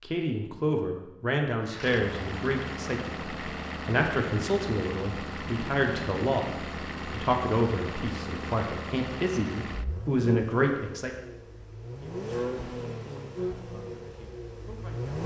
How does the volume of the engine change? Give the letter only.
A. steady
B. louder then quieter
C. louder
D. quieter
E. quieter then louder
A.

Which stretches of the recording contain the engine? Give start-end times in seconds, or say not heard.
1.6-15.2.